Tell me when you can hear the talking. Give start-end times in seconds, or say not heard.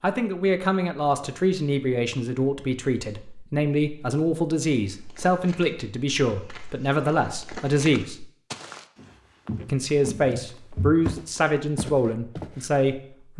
0.0-8.2, 9.7-13.3.